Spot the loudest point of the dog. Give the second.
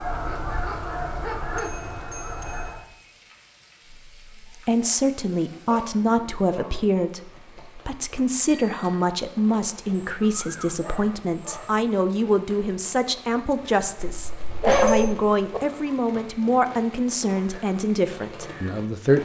15 s.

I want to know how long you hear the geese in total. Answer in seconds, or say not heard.
3 s.